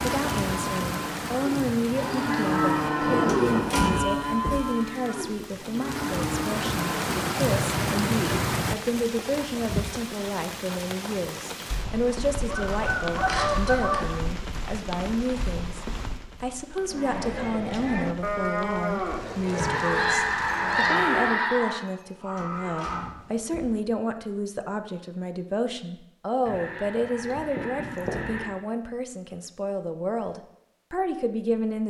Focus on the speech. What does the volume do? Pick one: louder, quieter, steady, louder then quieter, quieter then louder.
steady.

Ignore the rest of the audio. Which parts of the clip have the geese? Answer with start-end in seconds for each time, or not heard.
1.9-4.0, 12.4-14.2, 19.6-21.8, 26.4-28.4.